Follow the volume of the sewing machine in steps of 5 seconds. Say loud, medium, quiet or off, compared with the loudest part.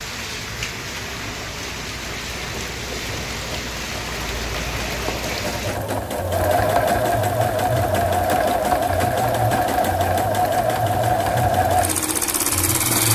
quiet, loud, loud.